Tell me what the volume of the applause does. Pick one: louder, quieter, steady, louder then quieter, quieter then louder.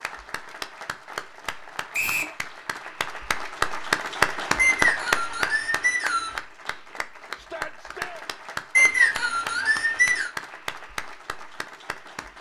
louder then quieter.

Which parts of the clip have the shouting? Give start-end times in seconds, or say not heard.
7.3-8.2.